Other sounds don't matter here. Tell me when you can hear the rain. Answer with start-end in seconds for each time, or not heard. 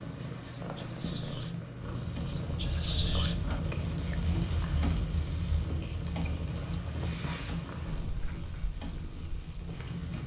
1.8-10.2.